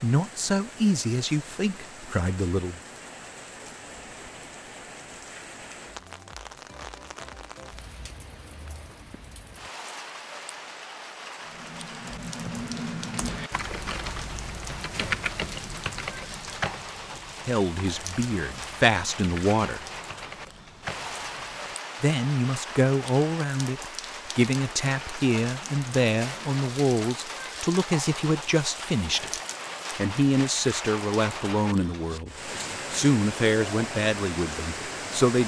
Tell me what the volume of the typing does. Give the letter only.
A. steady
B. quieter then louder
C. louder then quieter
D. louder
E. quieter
B.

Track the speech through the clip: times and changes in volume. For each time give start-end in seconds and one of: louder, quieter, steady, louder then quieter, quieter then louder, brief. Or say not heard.
0.0-2.8 brief
17.4-19.9 brief
22.0-35.4 steady.